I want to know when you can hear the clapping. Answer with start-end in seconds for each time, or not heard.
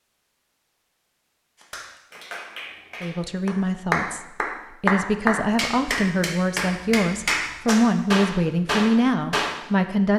1.6-9.6.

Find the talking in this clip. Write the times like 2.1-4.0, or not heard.
3.0-10.1.